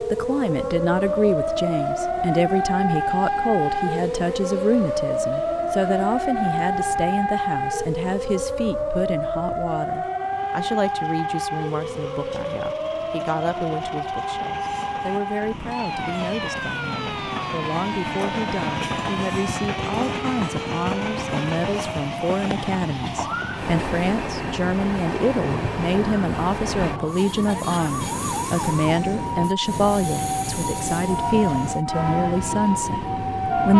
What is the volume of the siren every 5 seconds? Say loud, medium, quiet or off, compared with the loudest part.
loud, loud, loud, medium, medium, medium, loud.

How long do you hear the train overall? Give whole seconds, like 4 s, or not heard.
34 s.